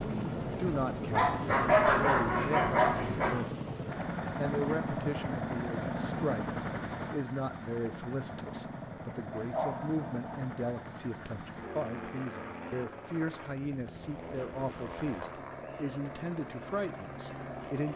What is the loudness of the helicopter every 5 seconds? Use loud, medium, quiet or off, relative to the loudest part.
loud, loud, medium, medium.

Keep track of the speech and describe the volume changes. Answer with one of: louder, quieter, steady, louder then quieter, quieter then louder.
steady.